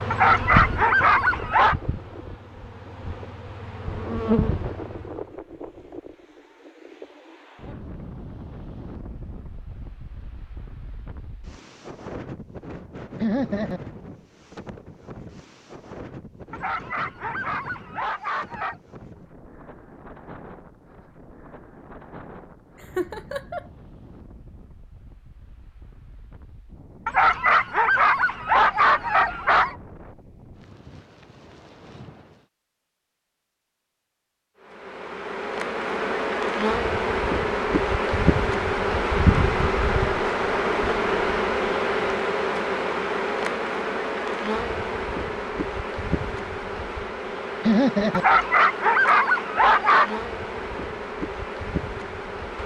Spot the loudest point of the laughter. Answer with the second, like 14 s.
48 s.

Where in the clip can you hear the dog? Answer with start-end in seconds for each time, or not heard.
0.1-1.8, 16.5-18.8, 27.1-29.8, 48.1-50.2.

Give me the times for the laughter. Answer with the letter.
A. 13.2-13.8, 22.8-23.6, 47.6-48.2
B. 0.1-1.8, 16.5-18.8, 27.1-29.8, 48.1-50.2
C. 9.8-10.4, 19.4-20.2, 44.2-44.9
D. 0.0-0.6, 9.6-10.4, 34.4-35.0
A.